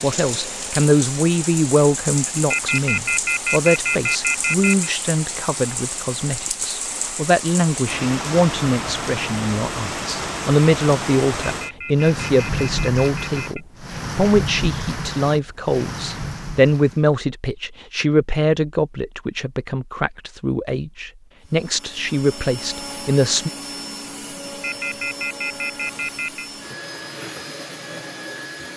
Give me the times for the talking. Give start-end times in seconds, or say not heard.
0.0-23.5.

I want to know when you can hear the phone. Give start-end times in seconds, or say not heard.
2.5-4.9, 11.4-13.7, 24.6-26.5.